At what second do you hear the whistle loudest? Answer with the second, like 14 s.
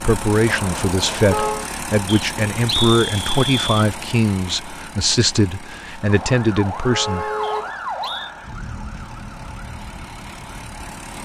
3 s.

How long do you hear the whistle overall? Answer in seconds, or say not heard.
3 s.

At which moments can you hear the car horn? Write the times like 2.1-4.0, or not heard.
0.5-1.7, 6.0-7.8.